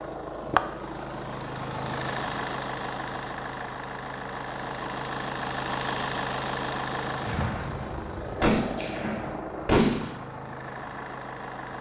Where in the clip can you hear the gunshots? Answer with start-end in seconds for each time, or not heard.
7.2-10.1.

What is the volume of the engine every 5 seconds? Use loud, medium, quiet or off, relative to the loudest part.
loud, loud, medium.